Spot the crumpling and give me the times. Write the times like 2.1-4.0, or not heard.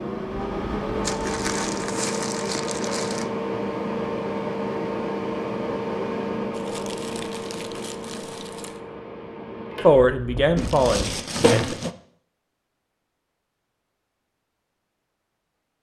1.0-3.2, 6.5-8.8, 10.6-11.9.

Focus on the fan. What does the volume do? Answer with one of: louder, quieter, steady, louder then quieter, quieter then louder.
quieter.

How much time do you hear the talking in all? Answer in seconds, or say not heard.
2 s.